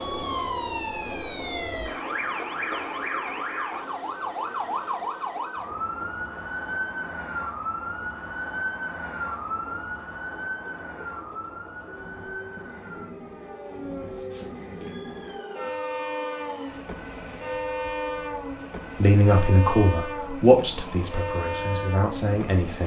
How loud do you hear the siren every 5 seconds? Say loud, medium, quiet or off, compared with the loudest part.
loud, loud, medium, quiet, quiet.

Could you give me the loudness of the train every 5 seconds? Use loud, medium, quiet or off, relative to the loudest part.
medium, quiet, medium, loud, loud.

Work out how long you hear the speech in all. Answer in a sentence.
The speech can be heard for 4 seconds in total.